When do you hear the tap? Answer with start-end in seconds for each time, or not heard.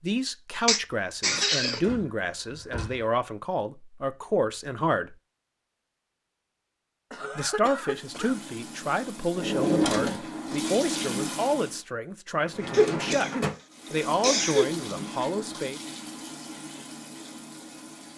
7.8-11.8, 13.7-18.1.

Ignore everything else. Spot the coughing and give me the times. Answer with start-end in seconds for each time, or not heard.
0.7-1.8, 7.1-8.3, 12.7-14.7.